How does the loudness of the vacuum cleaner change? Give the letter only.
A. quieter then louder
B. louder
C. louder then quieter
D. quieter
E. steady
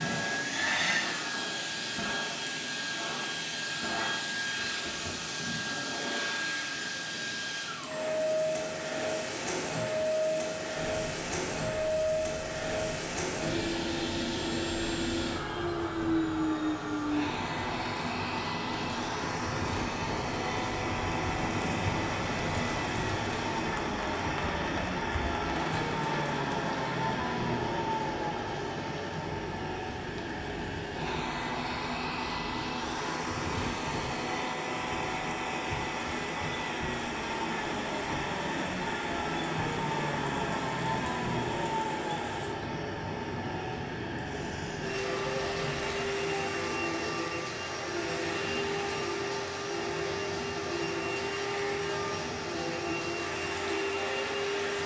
E.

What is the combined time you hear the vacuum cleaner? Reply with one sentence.
The vacuum cleaner can be heard for 55 seconds in total.